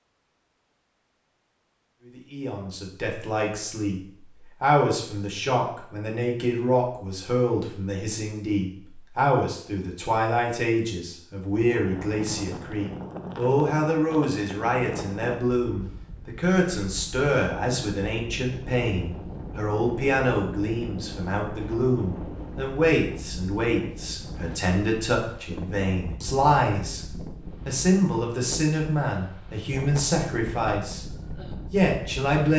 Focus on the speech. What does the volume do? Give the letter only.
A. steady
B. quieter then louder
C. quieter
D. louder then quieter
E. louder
A.